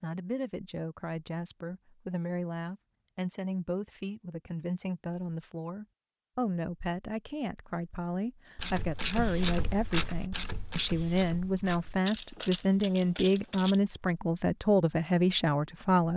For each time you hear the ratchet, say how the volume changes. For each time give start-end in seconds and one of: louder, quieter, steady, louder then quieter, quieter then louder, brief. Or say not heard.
8.6-13.8 quieter.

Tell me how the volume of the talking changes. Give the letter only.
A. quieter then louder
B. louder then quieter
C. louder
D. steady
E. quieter
C.